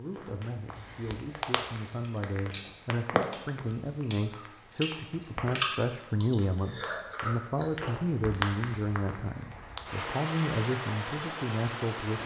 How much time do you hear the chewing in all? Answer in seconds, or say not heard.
7 s.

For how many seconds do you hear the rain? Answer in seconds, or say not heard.
12 s.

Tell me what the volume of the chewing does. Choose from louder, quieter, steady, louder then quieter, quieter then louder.
louder then quieter.